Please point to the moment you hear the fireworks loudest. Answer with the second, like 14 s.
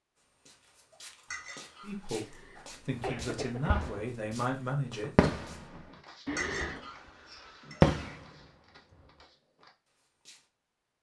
8 s.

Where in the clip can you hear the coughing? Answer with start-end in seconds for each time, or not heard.
2.2-3.8, 6.2-6.9.